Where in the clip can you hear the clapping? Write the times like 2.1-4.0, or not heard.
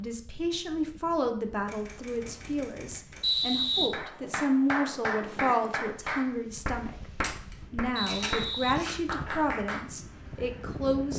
3.9-9.8.